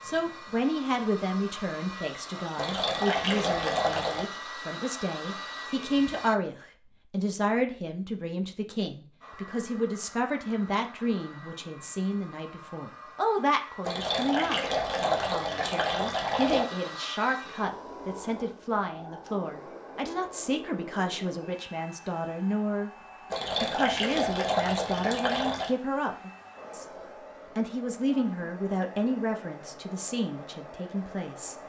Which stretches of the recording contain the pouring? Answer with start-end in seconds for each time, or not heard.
2.5-4.2, 13.8-16.6, 23.3-25.8.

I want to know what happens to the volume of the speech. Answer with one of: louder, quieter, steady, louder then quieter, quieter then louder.
steady.